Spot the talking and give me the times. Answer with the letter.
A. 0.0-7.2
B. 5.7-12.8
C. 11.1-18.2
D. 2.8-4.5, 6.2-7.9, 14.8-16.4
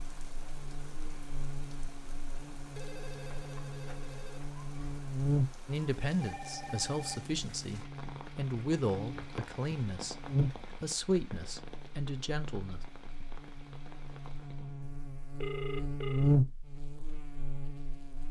B.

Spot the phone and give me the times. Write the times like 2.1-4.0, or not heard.
2.8-4.5, 6.2-7.9, 14.8-16.4.